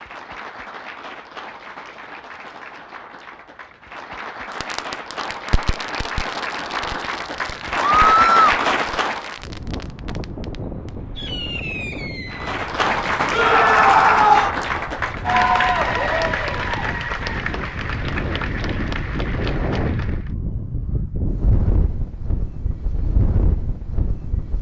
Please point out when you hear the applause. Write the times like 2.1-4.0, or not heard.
0.0-9.4, 12.2-20.3.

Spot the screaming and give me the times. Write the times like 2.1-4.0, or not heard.
7.8-8.5, 13.3-14.5.